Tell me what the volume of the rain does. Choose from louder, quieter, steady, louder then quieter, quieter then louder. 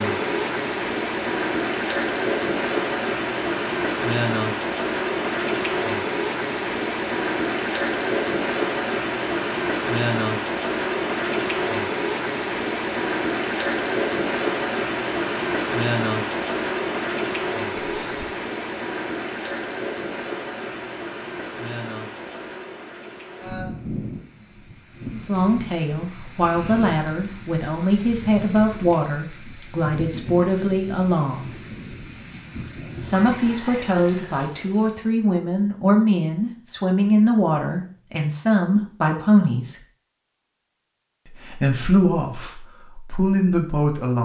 quieter.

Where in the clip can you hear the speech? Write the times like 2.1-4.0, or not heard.
25.1-31.5, 33.0-39.8, 41.3-44.2.